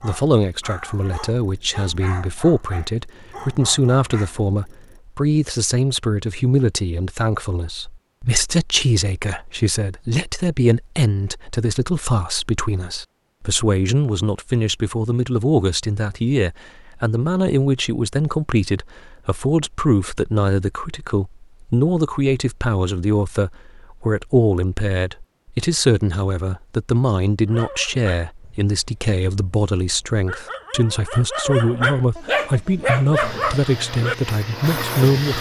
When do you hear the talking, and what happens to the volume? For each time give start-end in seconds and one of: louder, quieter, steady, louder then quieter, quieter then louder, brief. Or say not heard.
0.0-35.3 steady.